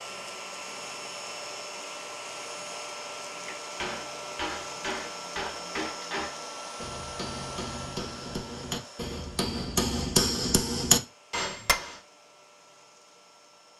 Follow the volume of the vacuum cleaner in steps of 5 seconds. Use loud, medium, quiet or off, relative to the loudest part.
loud, loud, quiet.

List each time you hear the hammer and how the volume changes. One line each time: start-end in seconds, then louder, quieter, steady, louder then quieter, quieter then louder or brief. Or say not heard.
3.5-11.9 louder.